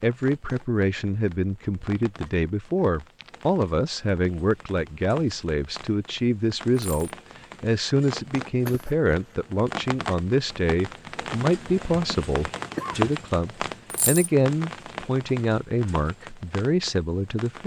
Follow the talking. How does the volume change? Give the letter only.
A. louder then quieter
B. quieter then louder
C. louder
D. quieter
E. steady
E.